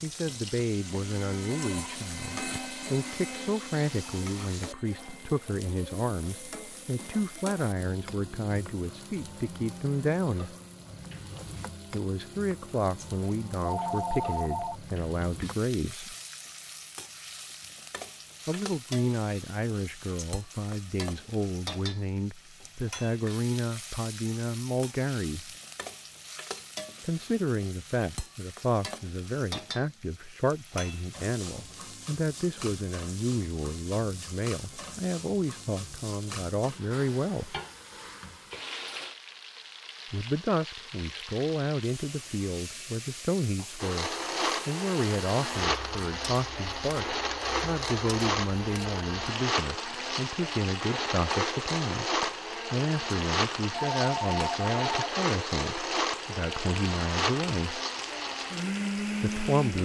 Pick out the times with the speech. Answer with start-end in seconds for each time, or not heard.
0.0-10.6, 11.9-16.1, 18.4-25.6, 27.0-37.5, 40.1-57.8, 59.2-59.7.